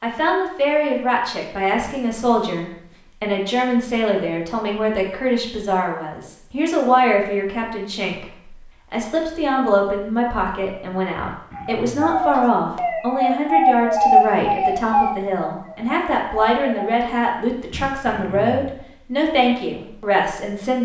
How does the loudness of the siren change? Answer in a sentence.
The volume of the siren goes up, then down.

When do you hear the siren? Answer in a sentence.
You can hear the siren from 11.5 to 17.0 s.